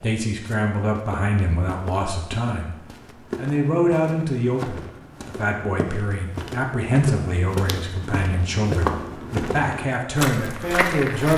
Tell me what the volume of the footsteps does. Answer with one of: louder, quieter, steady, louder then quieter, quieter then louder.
louder.